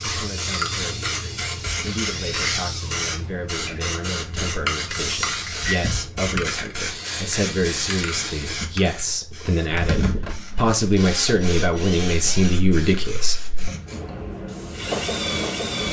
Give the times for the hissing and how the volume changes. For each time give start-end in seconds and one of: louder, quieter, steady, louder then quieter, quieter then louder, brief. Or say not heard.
0.0-15.8 quieter.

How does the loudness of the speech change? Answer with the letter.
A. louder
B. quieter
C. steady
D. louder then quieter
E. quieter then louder
A.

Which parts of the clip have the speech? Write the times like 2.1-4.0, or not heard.
0.0-13.4.